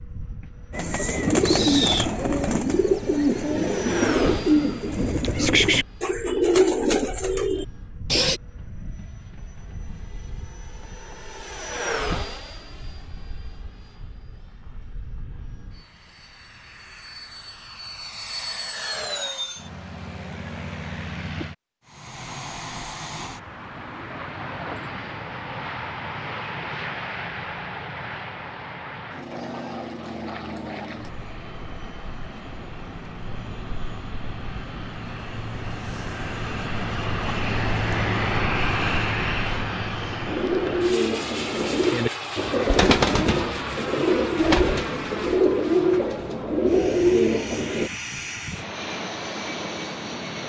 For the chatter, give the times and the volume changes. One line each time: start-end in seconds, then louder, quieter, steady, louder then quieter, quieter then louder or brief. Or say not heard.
not heard.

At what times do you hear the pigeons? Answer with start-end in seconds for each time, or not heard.
0.7-8.4, 40.2-47.9.